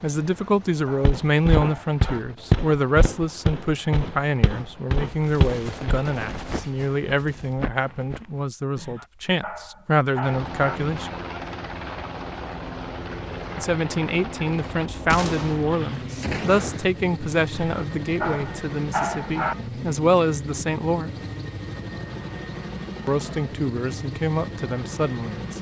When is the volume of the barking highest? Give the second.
19 s.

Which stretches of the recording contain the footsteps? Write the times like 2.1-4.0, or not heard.
1.0-8.4.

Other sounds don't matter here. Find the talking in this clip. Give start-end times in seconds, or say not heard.
0.0-11.1, 13.6-21.1, 23.1-25.5.